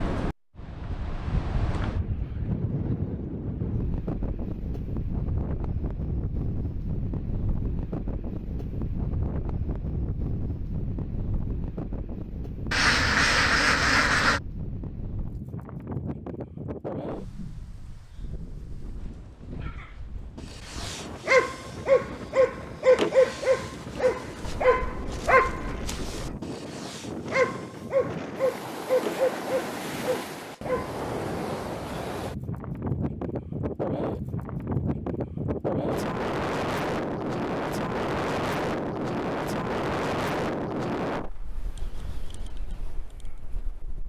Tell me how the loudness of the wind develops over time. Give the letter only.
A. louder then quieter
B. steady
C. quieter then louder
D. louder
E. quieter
C.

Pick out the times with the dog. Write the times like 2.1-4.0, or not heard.
20.4-30.9.